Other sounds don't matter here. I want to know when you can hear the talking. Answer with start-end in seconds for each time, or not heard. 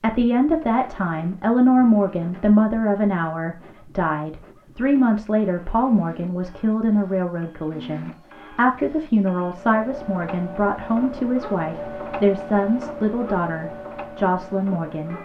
0.0-15.2.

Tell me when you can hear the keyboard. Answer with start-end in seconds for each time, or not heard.
not heard.